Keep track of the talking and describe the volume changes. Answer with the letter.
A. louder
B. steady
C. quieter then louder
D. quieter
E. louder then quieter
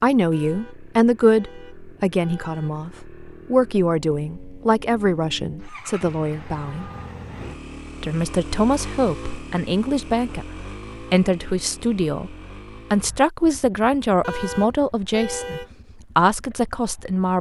B.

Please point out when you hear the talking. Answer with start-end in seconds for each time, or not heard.
0.0-6.9, 8.0-17.3.